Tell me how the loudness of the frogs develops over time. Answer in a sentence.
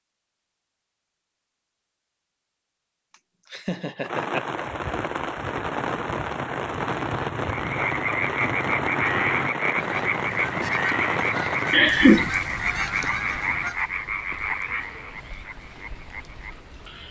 The volume of the frogs goes down.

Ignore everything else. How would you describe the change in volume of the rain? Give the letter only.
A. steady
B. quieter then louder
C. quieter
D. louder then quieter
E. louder
C.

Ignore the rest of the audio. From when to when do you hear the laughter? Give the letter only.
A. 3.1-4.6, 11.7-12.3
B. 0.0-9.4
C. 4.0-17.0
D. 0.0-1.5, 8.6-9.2
A.